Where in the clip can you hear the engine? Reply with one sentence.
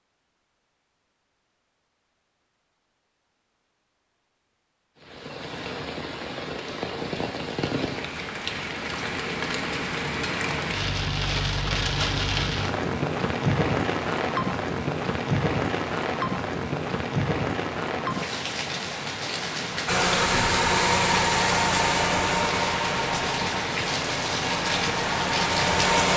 You can hear the engine from 19.9 to 26.1 s.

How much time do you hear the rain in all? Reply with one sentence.
You can hear the rain for 21 seconds altogether.